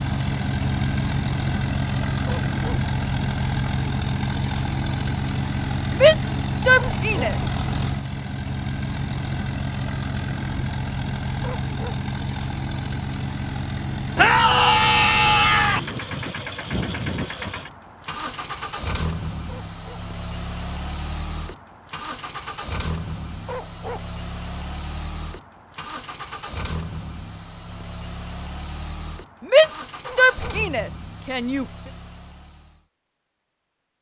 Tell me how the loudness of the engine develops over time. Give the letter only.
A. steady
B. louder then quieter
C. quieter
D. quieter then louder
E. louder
C.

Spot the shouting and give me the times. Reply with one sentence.
The shouting can be heard from 5.9 to 7.3 s, from 14.2 to 15.8 s and from 29.4 to 31.6 s.